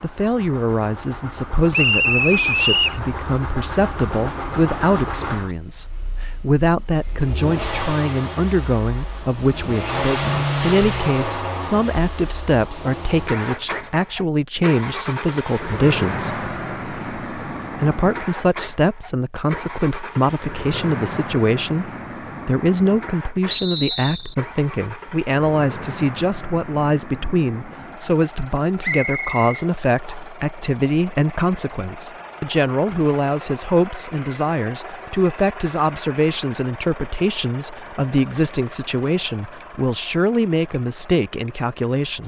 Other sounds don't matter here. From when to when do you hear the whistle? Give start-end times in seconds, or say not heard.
1.7-3.0, 23.5-24.4, 28.8-30.2.